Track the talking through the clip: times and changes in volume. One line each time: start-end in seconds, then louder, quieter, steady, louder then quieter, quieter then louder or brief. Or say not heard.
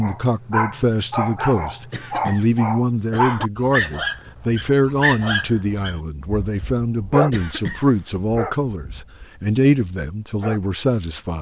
0.0-11.3 steady.